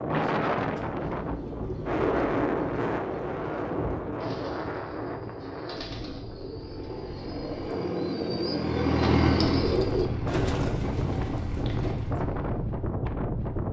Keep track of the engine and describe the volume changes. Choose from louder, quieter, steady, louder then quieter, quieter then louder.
louder then quieter.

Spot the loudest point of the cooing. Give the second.
10 s.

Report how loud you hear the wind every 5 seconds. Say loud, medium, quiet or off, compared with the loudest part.
loud, medium, loud.